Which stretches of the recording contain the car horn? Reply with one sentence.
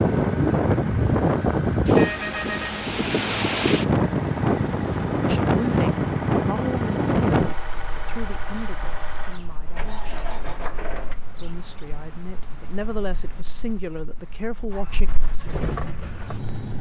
You can hear the car horn from 1.9 to 2.9 s.